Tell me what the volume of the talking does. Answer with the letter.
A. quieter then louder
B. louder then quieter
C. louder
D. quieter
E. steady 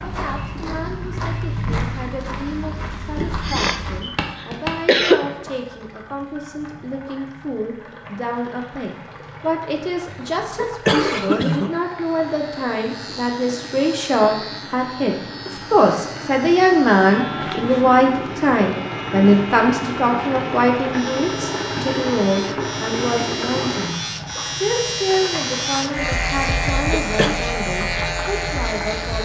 B.